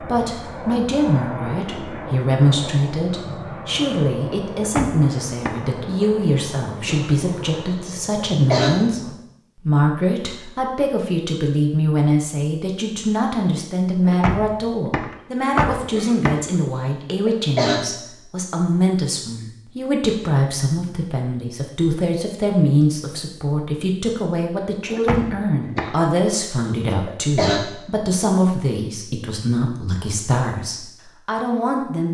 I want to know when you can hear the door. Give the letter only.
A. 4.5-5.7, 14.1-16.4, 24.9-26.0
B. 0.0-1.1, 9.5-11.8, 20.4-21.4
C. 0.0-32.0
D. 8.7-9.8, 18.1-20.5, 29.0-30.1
A.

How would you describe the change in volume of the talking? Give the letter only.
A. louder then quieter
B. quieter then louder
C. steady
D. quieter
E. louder
C.